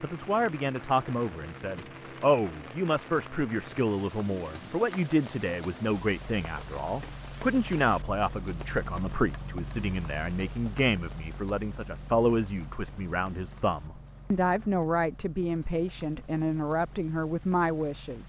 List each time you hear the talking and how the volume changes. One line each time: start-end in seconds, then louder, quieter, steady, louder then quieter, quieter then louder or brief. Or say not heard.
0.0-18.2 steady.